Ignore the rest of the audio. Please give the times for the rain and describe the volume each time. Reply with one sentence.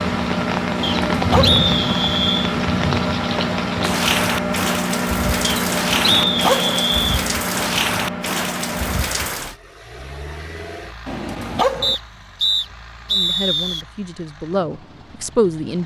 You can hear the rain from 0.0 to 9.6 s, at a steady volume.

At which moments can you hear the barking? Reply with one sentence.
The barking can be heard from 0.8 to 1.6 s, from 5.9 to 6.8 s and from 11.1 to 11.9 s.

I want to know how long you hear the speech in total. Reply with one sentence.
The speech can be heard for 3 seconds in total.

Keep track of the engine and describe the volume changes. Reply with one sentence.
The loudness of the engine goes down.